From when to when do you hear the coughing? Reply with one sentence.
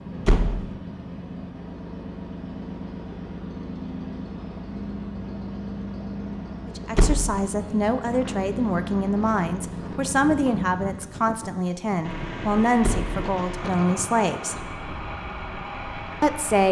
The coughing can't be heard in this clip.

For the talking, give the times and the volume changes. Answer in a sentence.
The talking can be heard from 6.7 to 14.6 s, at a steady volume; and briefly from 16.2 to 16.6 s.